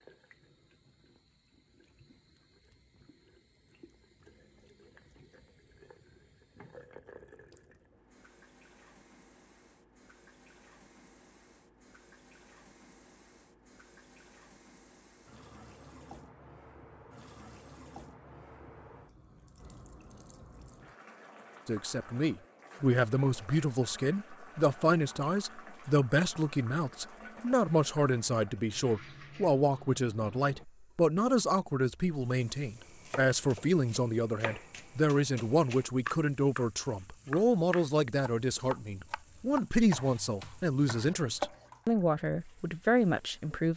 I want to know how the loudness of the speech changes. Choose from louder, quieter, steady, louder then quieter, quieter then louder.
steady.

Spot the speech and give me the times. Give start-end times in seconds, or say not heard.
21.6-43.7.